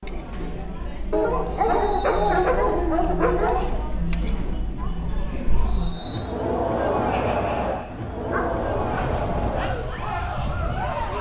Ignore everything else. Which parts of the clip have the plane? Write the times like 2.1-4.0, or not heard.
7.1-11.1.